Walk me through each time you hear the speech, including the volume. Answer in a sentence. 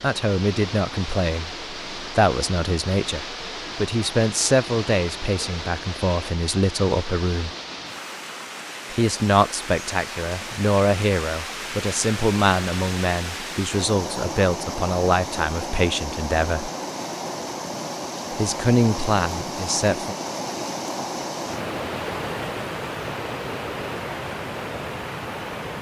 The speech can be heard from 0.0 to 7.5 s, at a steady volume; from 8.9 to 16.7 s, at a steady volume; and briefly from 18.3 to 20.1 s.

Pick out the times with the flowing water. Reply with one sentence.
The flowing water can be heard from 0.0 to 25.7 s.